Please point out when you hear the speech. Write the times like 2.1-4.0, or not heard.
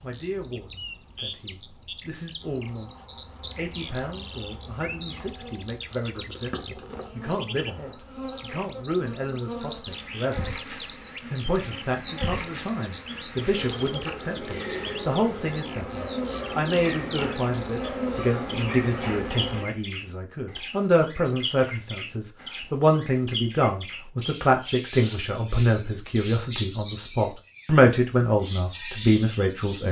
0.0-10.6, 11.3-29.8.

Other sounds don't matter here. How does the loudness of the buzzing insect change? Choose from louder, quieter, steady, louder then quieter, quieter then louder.
louder.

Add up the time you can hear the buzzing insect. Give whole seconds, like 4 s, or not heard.
17 s.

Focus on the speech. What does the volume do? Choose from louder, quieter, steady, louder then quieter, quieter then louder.
louder.